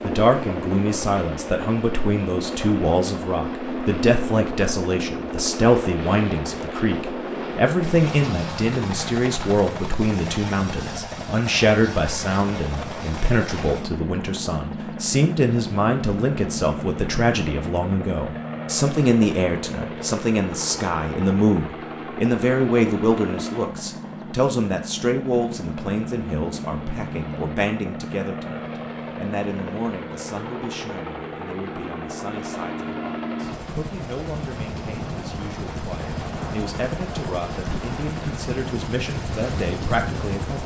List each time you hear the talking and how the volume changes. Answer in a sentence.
You can hear the talking from 0.0 to 40.6 s, getting quieter.